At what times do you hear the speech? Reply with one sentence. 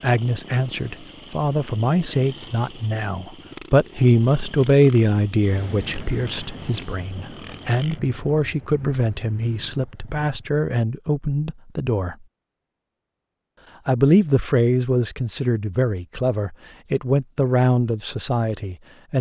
You can hear the speech from 0.0 to 12.2 s and from 13.8 to 19.1 s.